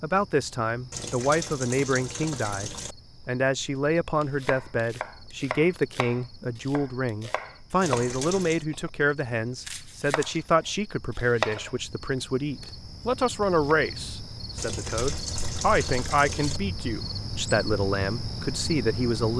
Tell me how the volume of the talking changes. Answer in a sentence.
The loudness of the talking stays about the same.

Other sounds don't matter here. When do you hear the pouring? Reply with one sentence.
You can hear the pouring from 0.9 to 3.0 s, from 7.8 to 8.7 s and from 14.6 to 16.6 s.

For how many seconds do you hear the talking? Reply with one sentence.
You can hear the talking for 19 seconds altogether.